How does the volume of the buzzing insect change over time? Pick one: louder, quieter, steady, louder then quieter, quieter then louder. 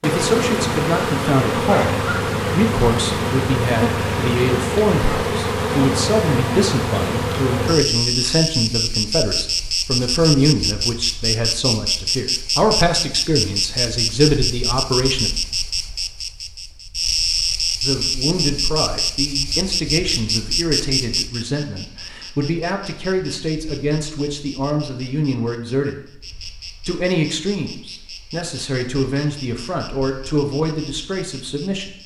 quieter.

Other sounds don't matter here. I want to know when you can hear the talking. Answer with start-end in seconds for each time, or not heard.
0.0-15.3, 17.8-26.1, 26.9-31.9.